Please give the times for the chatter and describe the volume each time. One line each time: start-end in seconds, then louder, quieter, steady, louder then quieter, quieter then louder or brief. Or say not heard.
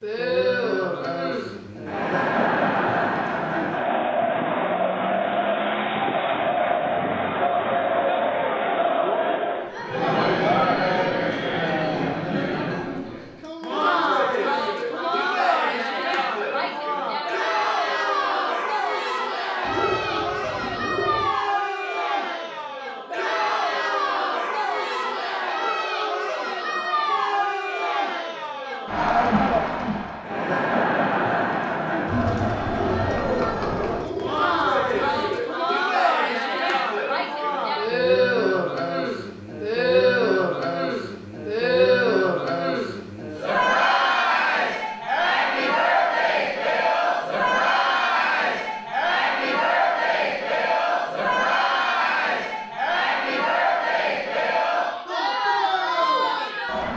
0.0-56.9 steady.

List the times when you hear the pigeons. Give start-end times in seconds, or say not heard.
19.6-21.3, 34.0-35.5.